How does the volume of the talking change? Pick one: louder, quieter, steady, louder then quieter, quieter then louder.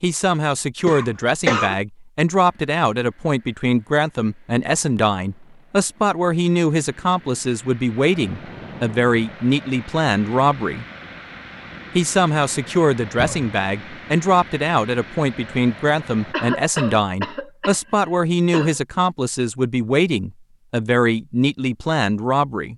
steady.